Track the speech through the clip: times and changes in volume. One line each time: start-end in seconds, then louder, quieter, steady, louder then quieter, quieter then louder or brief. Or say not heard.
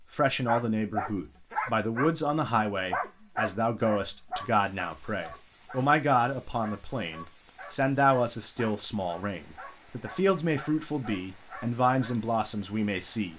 0.1-13.3 steady.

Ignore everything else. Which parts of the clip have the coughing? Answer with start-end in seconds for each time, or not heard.
not heard.